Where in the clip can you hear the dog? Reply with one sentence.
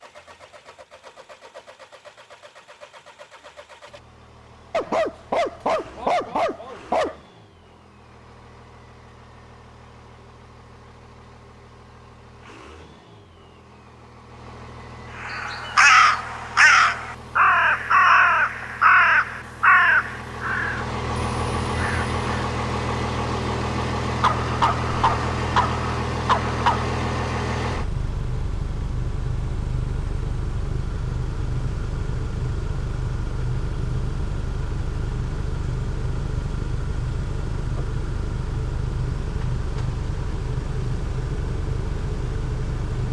You can hear the dog from 4.7 to 7.2 s and from 24.2 to 26.9 s.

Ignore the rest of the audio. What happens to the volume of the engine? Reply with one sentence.
The volume of the engine goes up.